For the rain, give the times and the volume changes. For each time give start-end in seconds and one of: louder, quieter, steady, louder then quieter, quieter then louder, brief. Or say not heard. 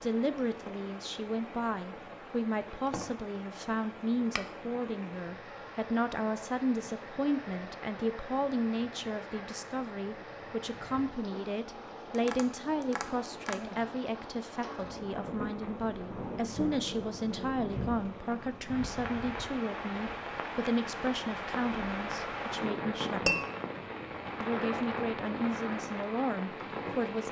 0.0-27.2 louder.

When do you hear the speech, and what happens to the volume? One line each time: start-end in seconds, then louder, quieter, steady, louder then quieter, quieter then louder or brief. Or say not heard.
0.0-23.4 steady
24.4-27.2 brief.